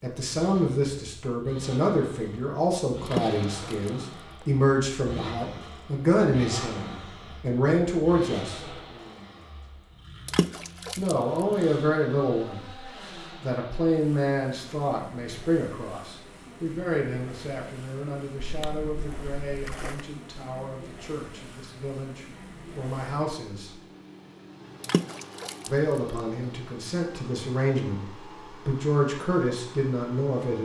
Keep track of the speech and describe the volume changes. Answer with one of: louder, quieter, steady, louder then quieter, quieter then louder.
quieter then louder.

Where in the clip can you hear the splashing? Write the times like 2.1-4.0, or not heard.
3.0-4.5, 10.2-11.7, 18.4-20.1, 24.8-26.2.